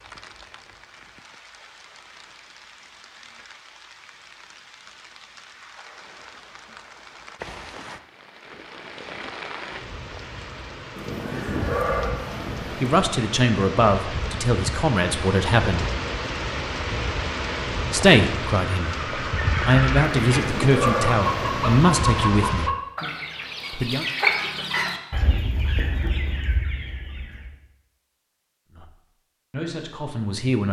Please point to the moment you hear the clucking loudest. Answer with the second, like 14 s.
24 s.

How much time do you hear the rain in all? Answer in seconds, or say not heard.
23 s.